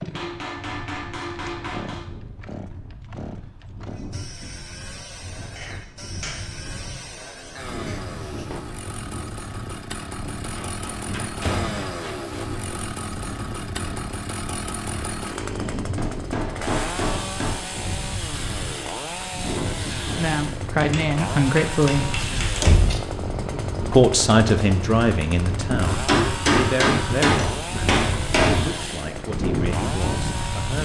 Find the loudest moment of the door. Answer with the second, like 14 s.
23 s.